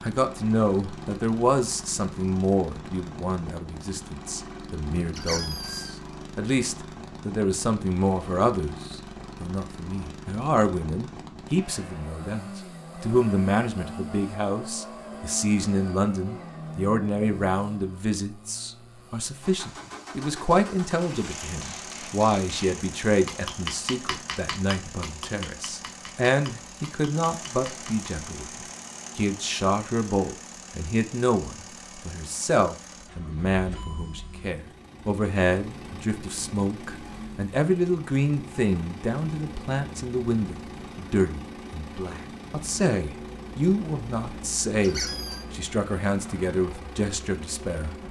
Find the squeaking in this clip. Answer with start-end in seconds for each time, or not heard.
5.1-6.0, 44.8-45.5.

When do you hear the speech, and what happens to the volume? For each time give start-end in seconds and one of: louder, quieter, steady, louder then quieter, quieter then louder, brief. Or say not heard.
0.0-48.0 steady.